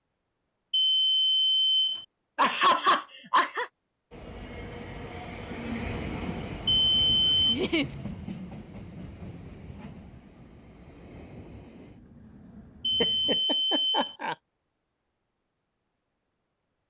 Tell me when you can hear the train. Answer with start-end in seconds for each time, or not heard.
4.1-13.4.